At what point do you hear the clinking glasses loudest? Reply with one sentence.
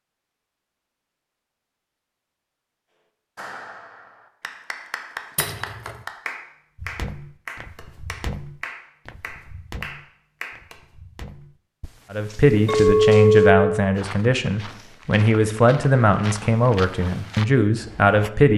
The loudest moment of the clinking glasses is at 13 seconds.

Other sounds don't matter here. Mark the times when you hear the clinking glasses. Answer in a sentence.
The clinking glasses can be heard from 5.3 to 5.9 s and from 12.7 to 13.8 s.